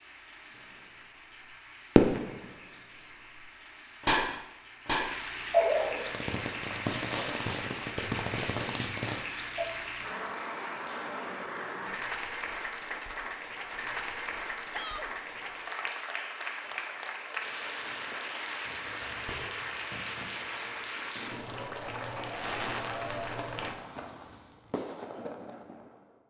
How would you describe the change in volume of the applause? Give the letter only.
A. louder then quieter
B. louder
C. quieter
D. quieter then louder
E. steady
B.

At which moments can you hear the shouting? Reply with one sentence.
The shouting can be heard from 14.7 to 15.1 s.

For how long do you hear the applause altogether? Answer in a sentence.
The applause can be heard for 24 seconds in total.